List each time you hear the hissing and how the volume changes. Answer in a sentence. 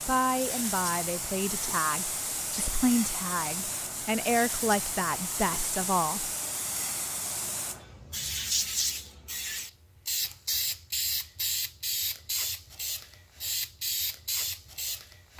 You can hear the hissing from 0.0 to 15.3 s, at a steady volume.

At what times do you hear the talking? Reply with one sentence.
The talking can be heard from 0.1 to 6.3 s.